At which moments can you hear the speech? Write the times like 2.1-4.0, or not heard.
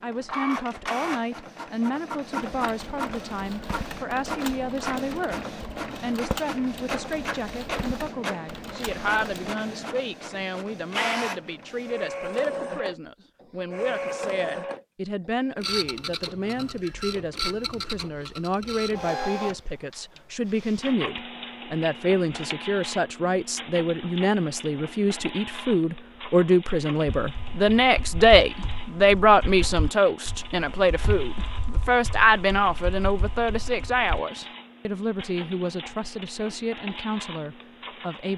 0.0-38.3.